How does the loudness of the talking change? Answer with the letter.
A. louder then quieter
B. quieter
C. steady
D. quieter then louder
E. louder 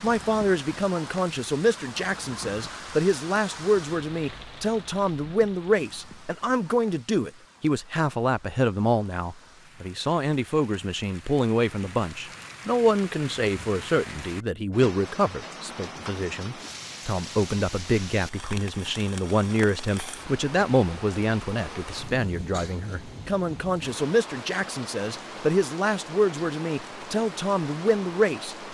C.